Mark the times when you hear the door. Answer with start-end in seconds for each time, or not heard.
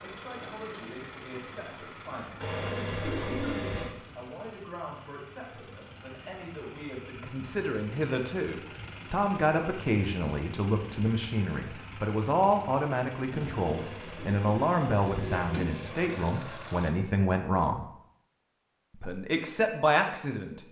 not heard.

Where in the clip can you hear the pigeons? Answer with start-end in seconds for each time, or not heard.
2.4-4.0, 13.6-16.1.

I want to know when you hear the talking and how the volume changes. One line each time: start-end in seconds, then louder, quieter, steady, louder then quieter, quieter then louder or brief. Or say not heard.
0.0-17.9 louder
18.9-20.6 brief.